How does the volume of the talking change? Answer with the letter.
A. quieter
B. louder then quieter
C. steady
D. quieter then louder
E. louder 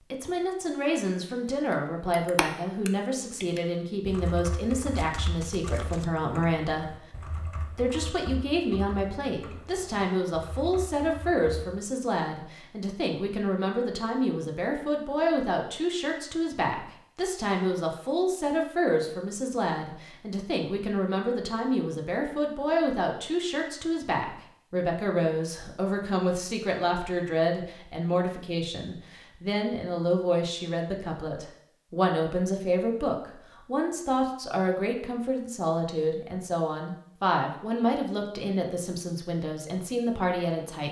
C.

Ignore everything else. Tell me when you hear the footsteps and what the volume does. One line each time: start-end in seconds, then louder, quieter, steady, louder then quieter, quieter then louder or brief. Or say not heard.
not heard.